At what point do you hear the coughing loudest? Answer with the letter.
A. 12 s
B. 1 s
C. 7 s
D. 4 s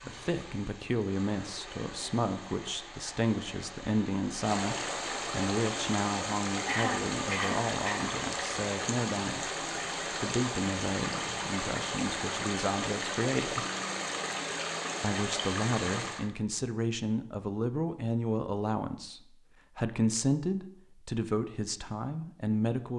C.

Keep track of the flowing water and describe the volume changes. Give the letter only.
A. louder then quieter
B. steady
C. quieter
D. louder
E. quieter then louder
D.